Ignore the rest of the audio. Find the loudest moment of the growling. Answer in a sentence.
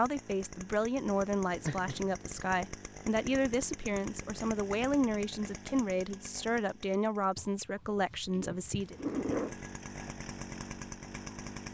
The volume of the growling peaks at 9 seconds.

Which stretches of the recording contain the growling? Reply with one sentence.
The growling can be heard from 1.6 to 2.6 s and from 7.3 to 9.6 s.